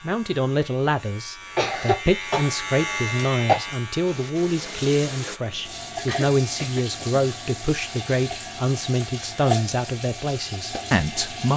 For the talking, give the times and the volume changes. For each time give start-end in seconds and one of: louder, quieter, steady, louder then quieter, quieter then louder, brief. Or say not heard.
0.0-11.5 steady.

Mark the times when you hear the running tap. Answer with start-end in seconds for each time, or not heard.
4.0-11.5.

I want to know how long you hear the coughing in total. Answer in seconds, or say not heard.
3 s.